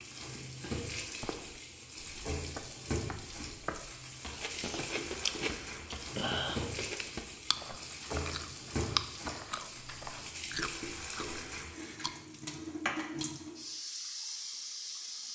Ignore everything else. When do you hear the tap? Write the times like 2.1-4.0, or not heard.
0.0-15.3.